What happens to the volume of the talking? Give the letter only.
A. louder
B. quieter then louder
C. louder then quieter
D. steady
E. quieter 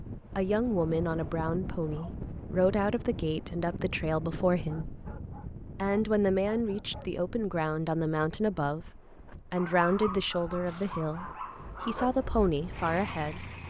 D.